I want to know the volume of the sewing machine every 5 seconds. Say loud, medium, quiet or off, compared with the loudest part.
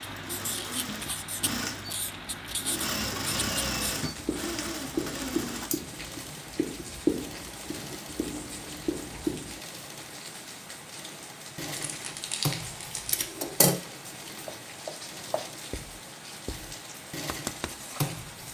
loud, medium, loud, medium.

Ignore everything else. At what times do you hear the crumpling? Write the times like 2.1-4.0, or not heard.
11.7-13.2.